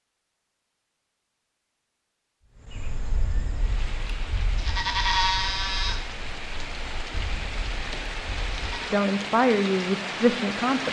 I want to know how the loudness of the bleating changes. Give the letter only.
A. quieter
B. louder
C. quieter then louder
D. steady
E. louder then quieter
E.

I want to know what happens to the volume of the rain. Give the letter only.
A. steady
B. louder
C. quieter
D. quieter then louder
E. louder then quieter
B.